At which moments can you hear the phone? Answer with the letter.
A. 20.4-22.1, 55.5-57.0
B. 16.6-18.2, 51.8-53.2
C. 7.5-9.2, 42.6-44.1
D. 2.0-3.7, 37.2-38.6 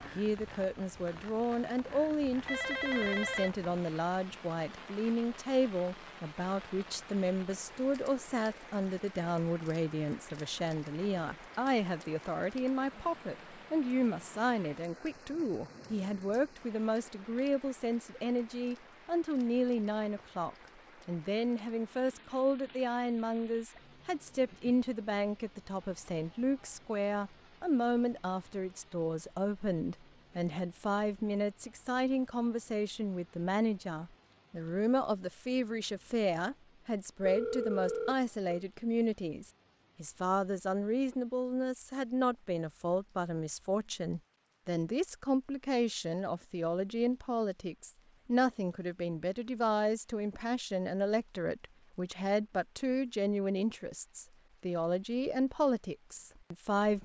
D.